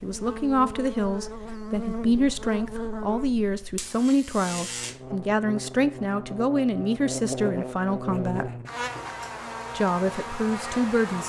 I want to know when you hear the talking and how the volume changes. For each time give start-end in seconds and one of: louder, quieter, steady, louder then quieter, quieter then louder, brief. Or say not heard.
0.0-8.5 steady
9.7-11.2 brief.